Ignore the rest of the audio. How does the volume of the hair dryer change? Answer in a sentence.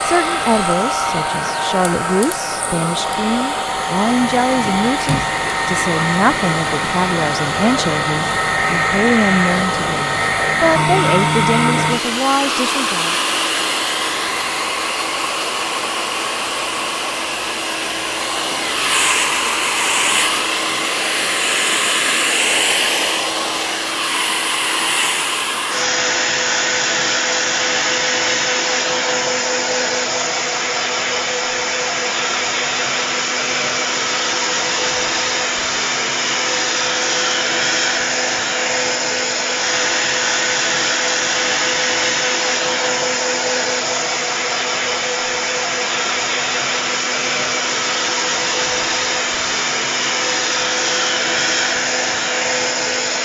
The volume of the hair dryer stays about the same.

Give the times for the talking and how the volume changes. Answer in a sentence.
You can hear the talking from 0.0 to 13.2 s, at a steady volume.